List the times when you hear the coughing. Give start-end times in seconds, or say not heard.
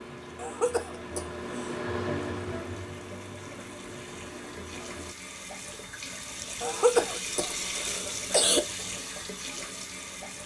0.3-1.8, 6.6-8.6.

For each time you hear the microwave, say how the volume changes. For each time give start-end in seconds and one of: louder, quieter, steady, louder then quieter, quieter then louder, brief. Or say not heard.
0.0-5.2 louder then quieter.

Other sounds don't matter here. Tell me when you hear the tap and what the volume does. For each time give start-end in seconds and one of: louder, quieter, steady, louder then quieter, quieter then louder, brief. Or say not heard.
0.0-10.4 louder.